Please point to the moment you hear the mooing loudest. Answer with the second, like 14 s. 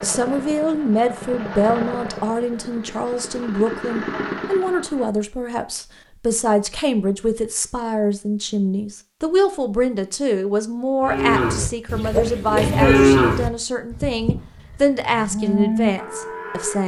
13 s.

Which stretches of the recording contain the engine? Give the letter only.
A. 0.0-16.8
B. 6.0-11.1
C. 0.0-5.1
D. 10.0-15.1
C.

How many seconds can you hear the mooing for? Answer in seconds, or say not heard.
6 s.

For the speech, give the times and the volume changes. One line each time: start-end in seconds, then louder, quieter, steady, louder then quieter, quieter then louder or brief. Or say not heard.
0.0-16.8 steady.